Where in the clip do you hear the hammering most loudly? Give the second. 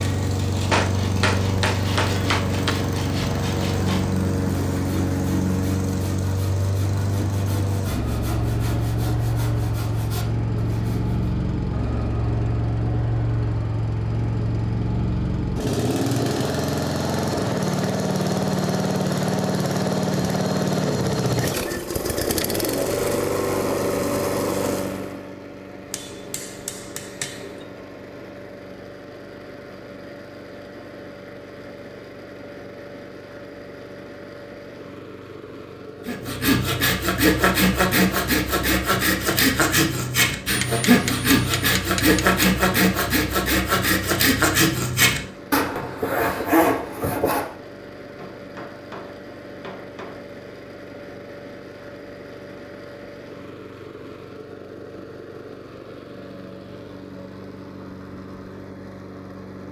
1 s.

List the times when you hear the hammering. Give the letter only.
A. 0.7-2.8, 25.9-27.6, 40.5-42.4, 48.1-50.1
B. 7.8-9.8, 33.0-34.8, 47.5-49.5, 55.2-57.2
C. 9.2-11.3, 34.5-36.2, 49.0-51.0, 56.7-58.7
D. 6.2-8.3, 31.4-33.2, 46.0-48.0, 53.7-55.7
A.